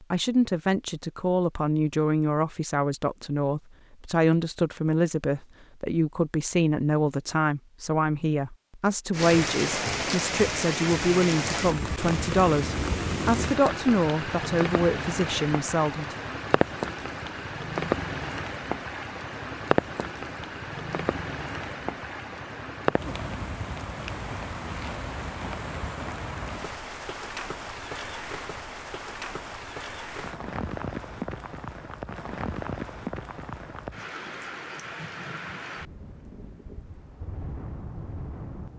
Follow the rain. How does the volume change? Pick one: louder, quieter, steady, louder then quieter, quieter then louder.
quieter.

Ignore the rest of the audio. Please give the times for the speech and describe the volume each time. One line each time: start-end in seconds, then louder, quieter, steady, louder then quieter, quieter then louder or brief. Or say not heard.
0.1-16.1 steady.